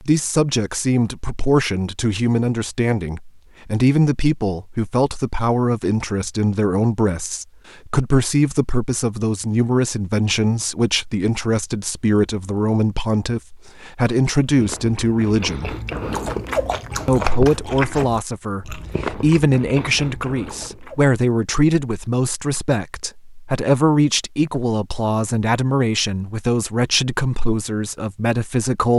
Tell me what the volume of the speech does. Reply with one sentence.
The volume of the speech stays about the same.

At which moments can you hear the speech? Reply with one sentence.
You can hear the speech from 0.0 to 15.8 s and from 17.1 to 28.9 s.